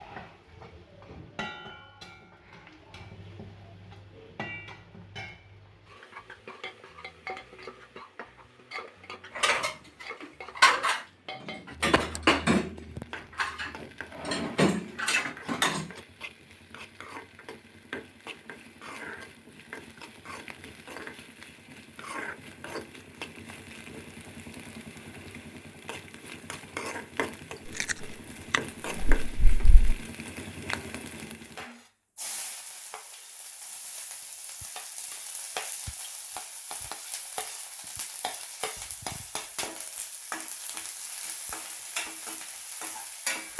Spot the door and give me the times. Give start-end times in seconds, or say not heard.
not heard.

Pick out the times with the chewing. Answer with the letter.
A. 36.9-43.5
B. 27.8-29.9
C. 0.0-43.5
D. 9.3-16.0
B.